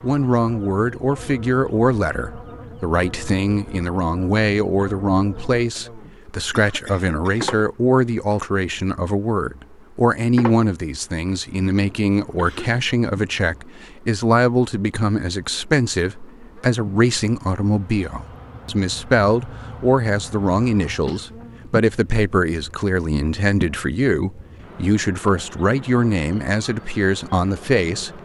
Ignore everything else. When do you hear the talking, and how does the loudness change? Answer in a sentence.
The talking can be heard from 0.0 to 28.2 s, at a steady volume.